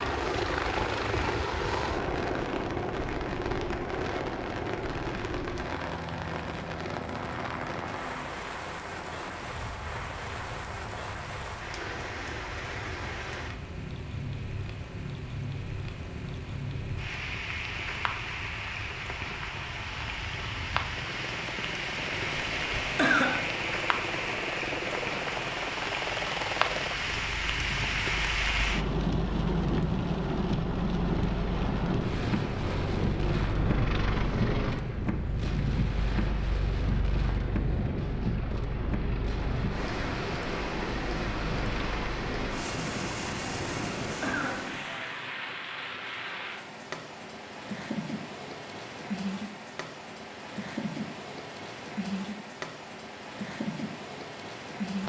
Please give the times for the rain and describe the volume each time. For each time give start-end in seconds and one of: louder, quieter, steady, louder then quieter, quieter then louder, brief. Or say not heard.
0.0-55.0 louder then quieter.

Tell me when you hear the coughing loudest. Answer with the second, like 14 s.
23 s.